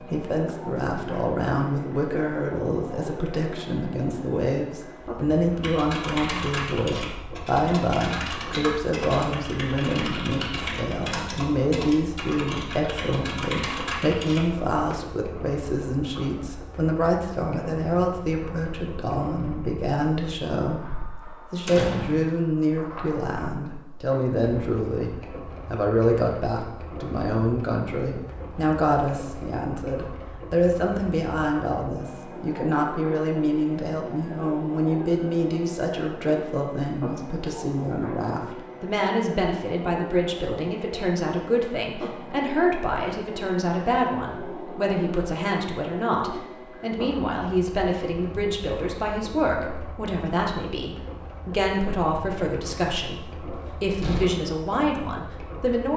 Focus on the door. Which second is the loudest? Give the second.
22 s.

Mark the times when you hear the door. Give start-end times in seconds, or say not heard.
21.6-22.4, 53.5-54.3.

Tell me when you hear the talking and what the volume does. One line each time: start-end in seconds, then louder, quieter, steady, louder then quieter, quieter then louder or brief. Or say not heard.
0.0-55.9 steady.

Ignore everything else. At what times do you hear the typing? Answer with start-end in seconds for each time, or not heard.
5.6-14.9.